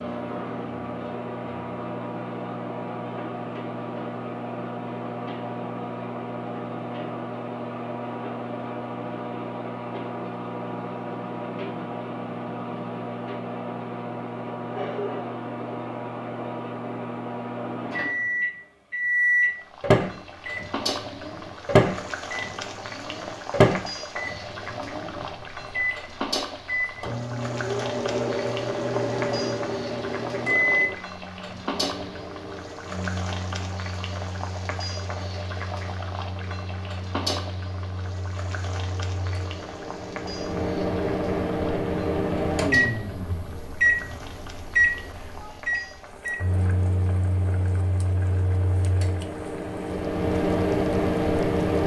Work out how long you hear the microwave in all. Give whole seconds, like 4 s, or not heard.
52 s.